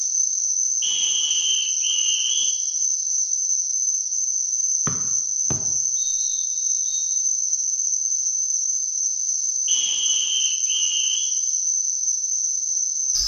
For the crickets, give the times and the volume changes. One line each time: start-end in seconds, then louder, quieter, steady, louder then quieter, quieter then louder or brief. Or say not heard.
0.0-13.2 steady.